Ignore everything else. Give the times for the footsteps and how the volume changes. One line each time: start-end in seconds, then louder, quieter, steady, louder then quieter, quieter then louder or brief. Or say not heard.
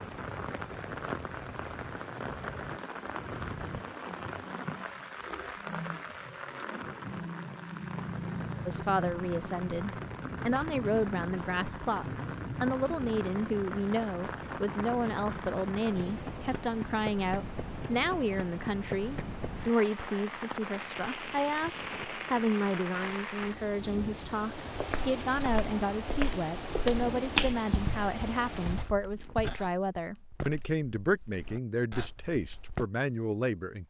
24.7-32.9 louder then quieter.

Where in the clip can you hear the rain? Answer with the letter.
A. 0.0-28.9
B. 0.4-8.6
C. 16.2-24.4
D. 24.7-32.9
A.